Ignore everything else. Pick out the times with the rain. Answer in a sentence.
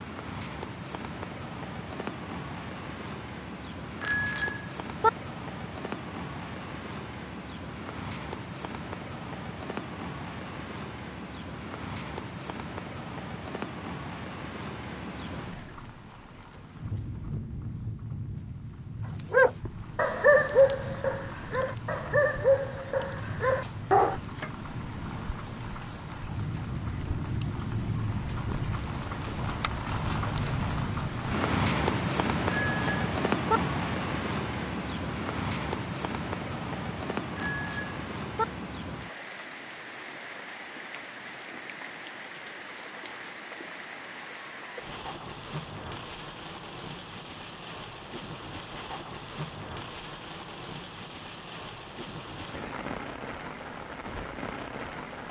You can hear the rain from 0.0 to 55.2 s.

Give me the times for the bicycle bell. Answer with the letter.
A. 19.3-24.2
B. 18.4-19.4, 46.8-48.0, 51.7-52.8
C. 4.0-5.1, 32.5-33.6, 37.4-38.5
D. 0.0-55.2
C.